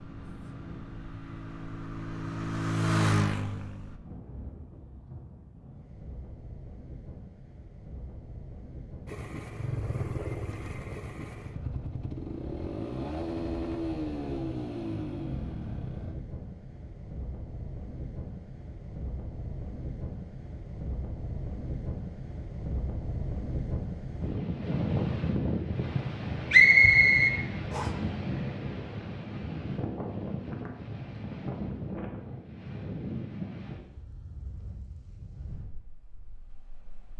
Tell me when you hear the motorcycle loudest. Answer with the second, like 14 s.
3 s.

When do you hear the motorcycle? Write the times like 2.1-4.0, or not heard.
0.0-4.0, 9.1-16.1.